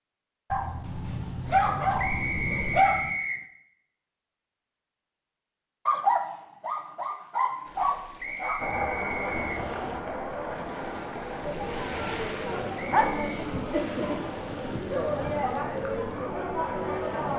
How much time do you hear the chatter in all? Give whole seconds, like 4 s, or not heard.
9 s.